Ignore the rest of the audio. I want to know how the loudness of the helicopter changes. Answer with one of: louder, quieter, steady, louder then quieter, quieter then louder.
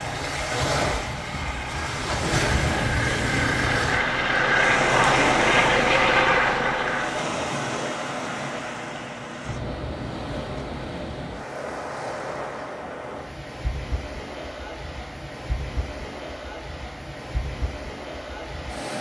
louder.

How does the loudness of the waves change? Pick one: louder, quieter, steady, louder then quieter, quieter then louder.
quieter.